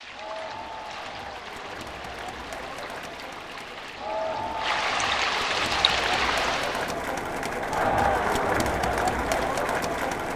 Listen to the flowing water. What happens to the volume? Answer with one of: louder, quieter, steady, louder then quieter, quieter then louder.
louder.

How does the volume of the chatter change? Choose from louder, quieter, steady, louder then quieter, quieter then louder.
louder.